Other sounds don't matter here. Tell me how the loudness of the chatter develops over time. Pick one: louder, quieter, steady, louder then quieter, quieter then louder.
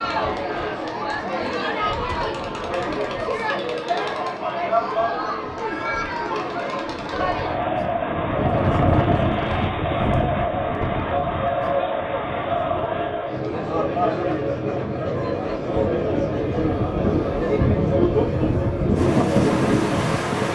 steady.